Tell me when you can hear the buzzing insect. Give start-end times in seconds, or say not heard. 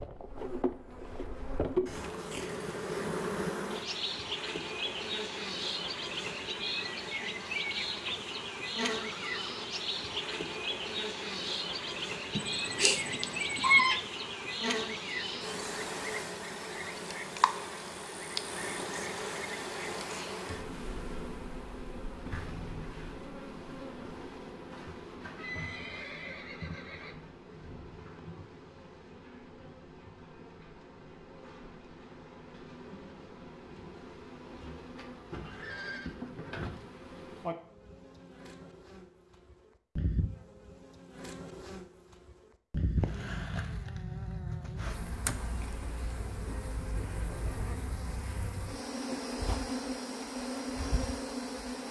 0.0-51.8.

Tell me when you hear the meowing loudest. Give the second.
14 s.